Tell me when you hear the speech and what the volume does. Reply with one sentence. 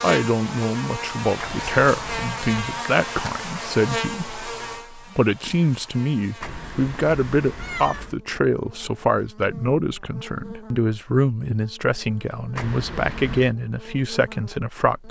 You can hear the speech from 0.0 to 15.0 s, at a steady volume.